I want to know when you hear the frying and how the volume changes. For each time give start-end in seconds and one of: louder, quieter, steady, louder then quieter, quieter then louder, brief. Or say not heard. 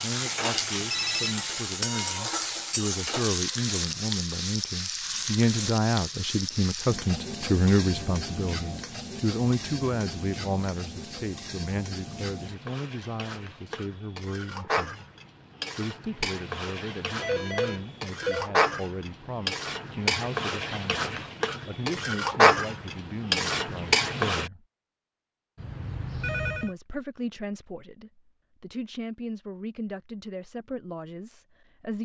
0.0-24.5 quieter then louder.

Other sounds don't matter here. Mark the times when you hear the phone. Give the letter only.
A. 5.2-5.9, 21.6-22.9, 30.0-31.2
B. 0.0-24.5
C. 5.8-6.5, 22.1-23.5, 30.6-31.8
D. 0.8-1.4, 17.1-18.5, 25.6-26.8
D.